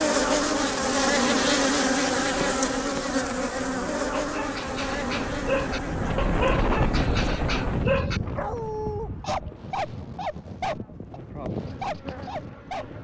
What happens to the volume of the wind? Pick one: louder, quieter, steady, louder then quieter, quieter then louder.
louder then quieter.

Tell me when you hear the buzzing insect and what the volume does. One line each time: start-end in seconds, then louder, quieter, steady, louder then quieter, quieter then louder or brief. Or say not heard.
0.0-13.0 quieter.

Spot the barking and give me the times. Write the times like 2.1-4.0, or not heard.
4.1-13.0.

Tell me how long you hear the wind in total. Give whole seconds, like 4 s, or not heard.
13 s.